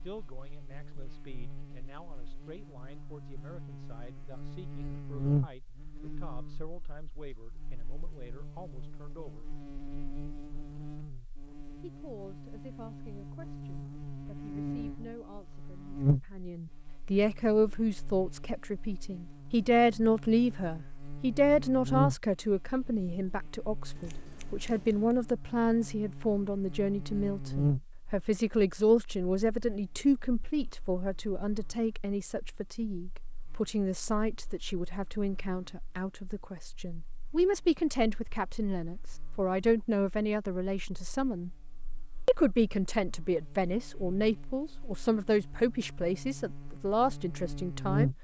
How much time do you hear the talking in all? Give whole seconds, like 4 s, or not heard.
45 s.